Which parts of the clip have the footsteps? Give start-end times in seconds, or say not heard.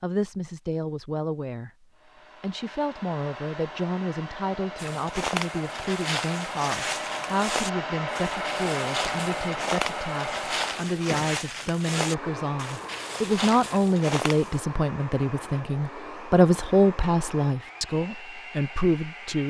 4.8-14.6.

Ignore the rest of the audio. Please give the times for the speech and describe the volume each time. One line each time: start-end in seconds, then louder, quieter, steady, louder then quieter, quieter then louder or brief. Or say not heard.
0.0-1.7 brief
2.4-19.4 louder.